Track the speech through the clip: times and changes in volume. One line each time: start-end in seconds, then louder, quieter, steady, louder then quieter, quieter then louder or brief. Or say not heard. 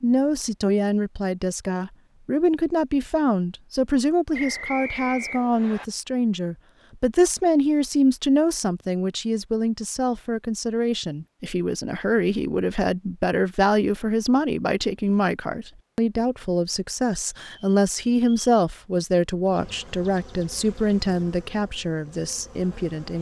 0.0-23.1 steady.